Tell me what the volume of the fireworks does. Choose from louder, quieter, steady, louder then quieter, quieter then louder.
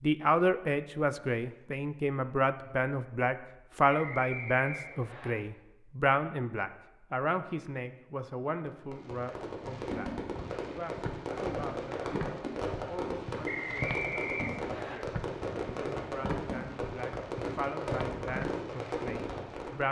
steady.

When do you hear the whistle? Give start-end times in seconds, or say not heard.
3.9-5.3, 13.4-15.0.